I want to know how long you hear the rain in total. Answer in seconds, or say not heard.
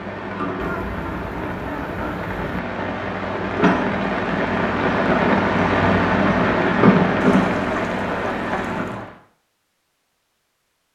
9 s.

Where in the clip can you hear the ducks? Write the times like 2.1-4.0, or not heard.
0.6-2.6, 7.2-9.1.